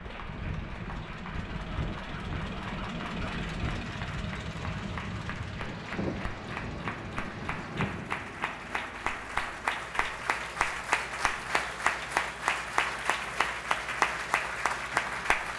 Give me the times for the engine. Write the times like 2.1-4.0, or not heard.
0.0-15.5.